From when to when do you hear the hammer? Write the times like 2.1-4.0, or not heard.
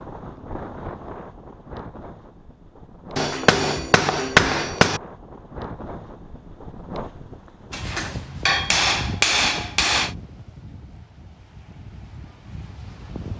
3.1-5.0, 7.7-10.1.